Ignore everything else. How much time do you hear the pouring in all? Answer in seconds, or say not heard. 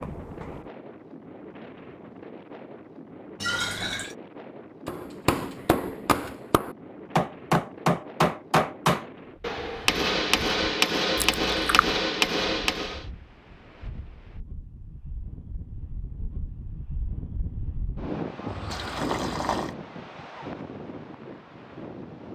3 s.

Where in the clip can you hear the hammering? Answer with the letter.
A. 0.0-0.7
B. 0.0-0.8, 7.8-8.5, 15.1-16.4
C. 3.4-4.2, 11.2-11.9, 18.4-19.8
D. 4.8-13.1
D.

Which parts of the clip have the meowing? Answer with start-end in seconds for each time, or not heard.
0.0-0.7.